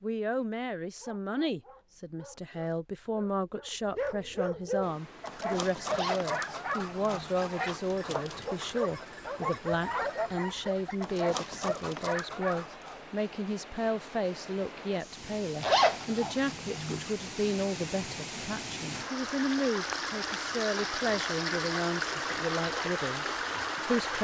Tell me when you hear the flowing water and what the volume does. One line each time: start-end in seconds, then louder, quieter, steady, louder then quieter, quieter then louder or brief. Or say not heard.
4.8-24.1 louder.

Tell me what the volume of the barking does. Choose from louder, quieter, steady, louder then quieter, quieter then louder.
louder.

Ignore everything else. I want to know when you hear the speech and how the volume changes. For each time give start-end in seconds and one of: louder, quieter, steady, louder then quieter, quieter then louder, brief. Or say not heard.
0.0-24.1 steady.